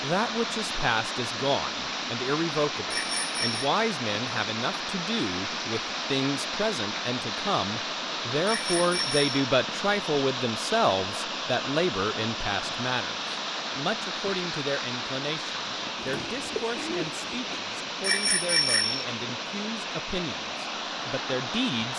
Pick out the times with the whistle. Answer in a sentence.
The whistle can't be heard in this clip.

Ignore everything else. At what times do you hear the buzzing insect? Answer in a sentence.
You can't hear the buzzing insect here.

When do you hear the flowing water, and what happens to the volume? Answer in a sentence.
You can hear the flowing water from 0.0 to 21.9 s, at a steady volume.